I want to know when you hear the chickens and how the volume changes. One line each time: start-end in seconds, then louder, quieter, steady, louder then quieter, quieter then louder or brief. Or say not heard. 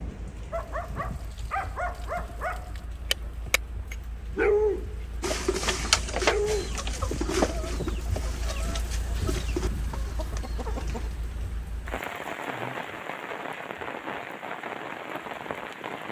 5.2-11.1 quieter.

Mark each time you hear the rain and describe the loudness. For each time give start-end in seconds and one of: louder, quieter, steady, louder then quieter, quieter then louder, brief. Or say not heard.
0.0-16.0 louder.